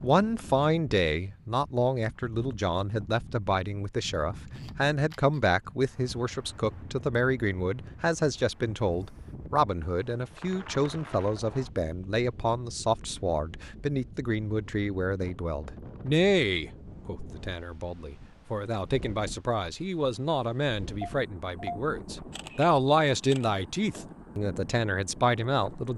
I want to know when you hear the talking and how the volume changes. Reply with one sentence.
The talking can be heard from 0.0 to 25.9 s, at a steady volume.